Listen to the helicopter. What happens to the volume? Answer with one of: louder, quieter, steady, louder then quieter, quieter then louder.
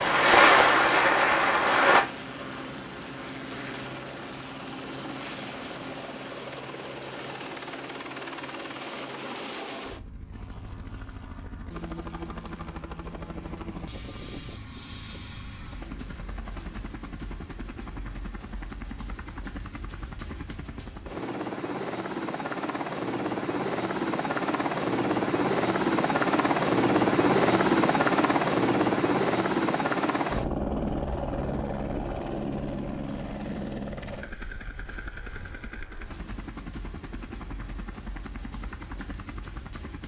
louder then quieter.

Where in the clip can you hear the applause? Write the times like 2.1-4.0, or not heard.
0.0-2.0.